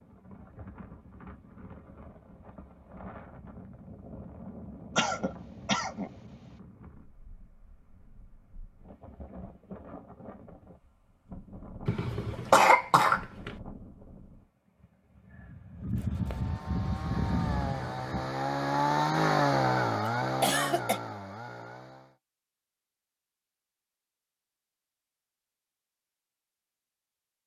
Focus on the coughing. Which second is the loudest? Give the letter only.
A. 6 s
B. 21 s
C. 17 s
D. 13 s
D.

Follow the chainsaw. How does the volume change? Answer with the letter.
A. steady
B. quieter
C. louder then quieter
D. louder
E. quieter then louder
C.